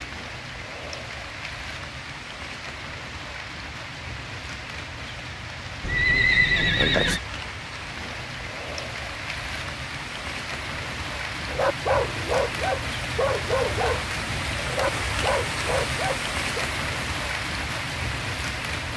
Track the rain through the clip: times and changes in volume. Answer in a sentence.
You can hear the rain from 0.0 to 18.9 s, getting louder.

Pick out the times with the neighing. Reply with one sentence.
The neighing can be heard from 5.8 to 7.2 s.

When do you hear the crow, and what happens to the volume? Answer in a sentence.
The crow can't be heard in this clip.